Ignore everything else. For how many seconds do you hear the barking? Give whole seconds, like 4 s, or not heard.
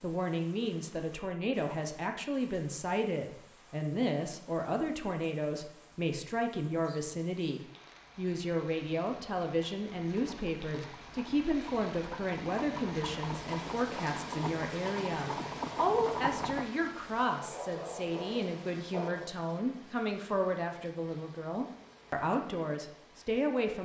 2 s.